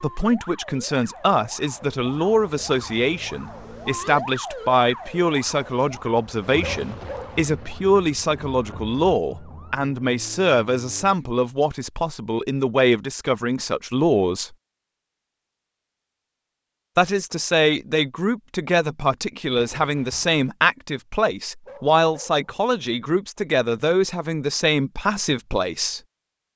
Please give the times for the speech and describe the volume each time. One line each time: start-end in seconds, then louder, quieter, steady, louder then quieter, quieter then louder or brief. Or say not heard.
0.0-14.6 steady
16.9-26.0 steady.